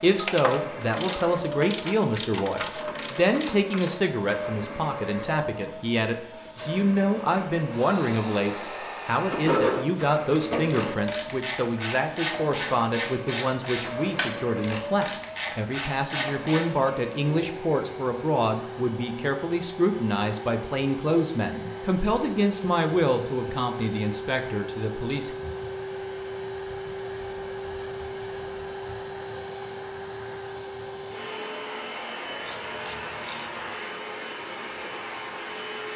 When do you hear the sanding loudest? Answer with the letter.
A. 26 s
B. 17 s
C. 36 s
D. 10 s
D.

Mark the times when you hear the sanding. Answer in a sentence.
You can hear the sanding from 9.3 to 10.9 s.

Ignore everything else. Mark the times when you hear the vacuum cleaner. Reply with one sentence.
You can hear the vacuum cleaner from 0.0 to 35.9 s.